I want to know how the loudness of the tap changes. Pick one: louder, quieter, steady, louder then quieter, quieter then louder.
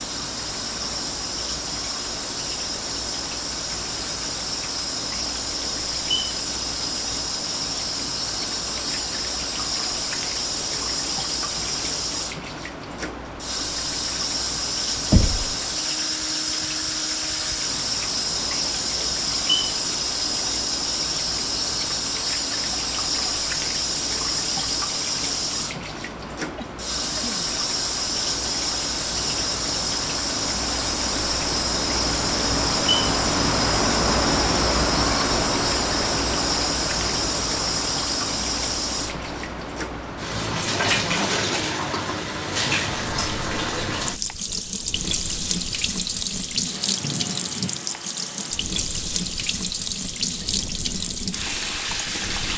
steady.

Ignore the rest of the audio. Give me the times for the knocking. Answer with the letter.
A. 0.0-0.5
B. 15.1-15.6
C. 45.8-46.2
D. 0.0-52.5
B.